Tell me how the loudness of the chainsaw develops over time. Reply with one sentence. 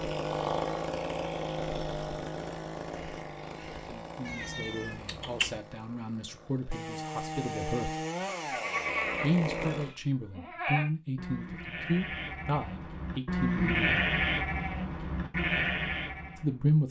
The loudness of the chainsaw goes down, then up.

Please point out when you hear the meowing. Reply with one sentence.
The meowing can be heard from 4.2 to 5.6 s.